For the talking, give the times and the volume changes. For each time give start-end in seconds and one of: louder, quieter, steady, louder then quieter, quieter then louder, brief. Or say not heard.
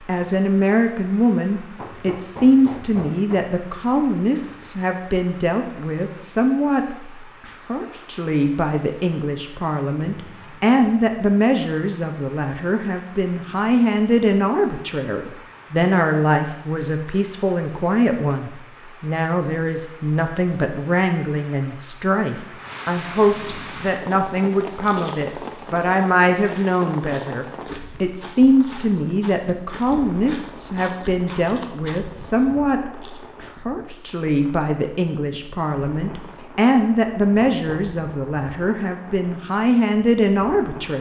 0.0-40.9 steady.